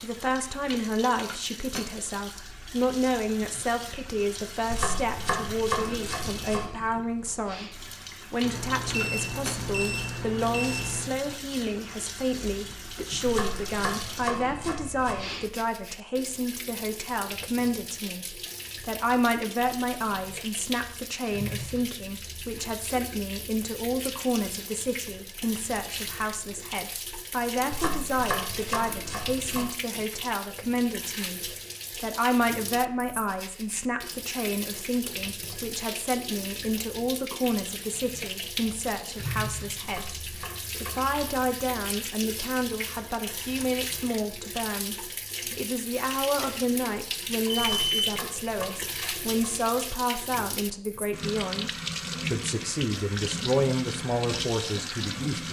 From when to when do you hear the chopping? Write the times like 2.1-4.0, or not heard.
4.7-6.7, 13.2-15.2, 27.7-29.7, 39.8-41.1, 47.5-49.6.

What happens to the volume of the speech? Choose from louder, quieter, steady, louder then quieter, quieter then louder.
steady.